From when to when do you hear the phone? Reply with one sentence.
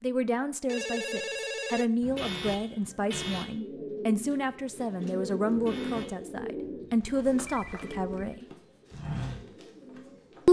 You can hear the phone from 0.7 to 1.9 s and from 7.0 to 8.4 s.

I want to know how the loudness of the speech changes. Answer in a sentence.
The loudness of the speech stays about the same.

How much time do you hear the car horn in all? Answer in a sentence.
You can hear the car horn for 2 seconds altogether.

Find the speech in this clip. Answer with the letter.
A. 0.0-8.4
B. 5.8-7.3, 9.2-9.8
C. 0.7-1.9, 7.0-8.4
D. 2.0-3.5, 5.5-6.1
A.